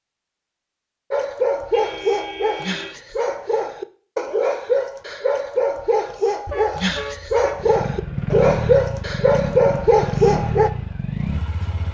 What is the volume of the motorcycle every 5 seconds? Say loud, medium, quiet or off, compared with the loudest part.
off, loud, loud.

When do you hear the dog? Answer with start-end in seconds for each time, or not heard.
1.1-10.7.